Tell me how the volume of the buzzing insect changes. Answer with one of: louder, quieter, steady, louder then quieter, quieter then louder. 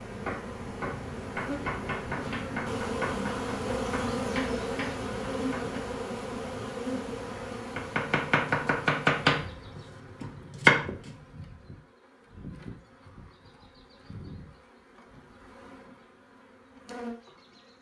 quieter.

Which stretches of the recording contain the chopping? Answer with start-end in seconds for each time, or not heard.
0.1-5.8, 7.8-11.2.